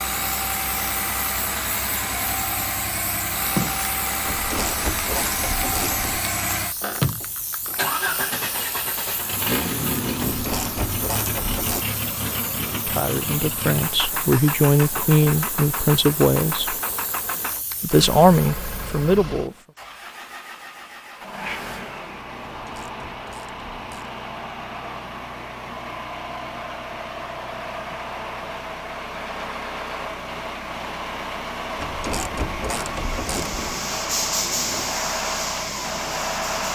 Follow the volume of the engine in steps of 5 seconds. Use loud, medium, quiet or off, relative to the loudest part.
loud, loud, loud, medium, medium, medium, loud, loud.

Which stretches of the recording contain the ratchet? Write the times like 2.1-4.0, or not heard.
4.2-6.2, 10.2-11.8, 22.6-24.1, 31.8-33.8.